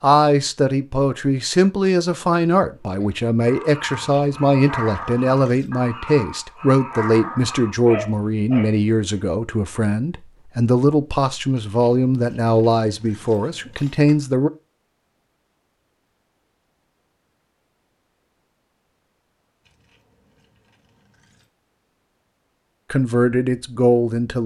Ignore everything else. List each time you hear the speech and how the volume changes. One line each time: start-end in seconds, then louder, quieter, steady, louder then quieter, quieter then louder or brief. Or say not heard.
0.0-14.5 steady
22.9-24.4 brief.